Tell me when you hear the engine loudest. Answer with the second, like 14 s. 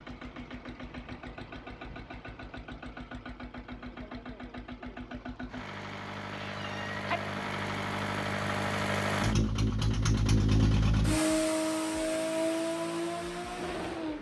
11 s.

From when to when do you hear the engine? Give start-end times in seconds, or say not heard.
0.0-14.1.